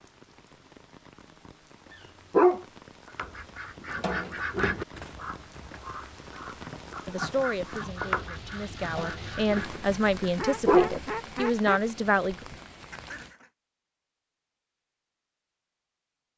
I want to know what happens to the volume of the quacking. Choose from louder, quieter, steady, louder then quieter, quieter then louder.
quieter then louder.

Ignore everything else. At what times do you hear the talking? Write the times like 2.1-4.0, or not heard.
7.0-12.4.